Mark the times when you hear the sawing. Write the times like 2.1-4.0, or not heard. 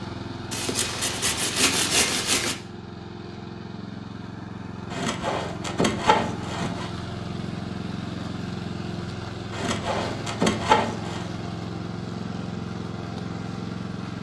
0.5-2.5, 4.9-6.9, 9.5-11.3.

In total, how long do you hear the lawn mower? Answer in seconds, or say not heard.
14 s.